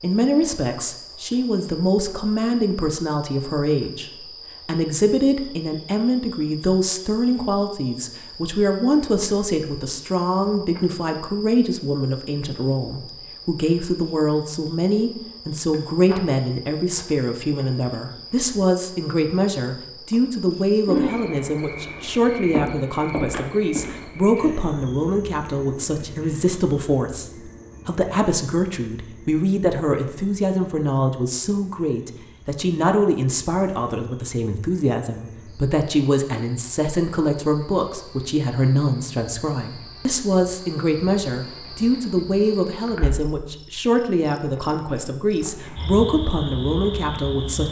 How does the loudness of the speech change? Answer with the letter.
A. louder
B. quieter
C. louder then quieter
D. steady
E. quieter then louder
D.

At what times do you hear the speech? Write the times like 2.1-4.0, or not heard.
0.0-47.6.